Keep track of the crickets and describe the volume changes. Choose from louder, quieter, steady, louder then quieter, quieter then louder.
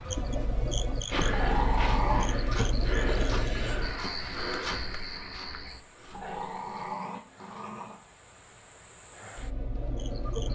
quieter then louder.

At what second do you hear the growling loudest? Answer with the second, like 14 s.
2 s.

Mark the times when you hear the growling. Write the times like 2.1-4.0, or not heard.
1.3-2.3, 6.1-8.0.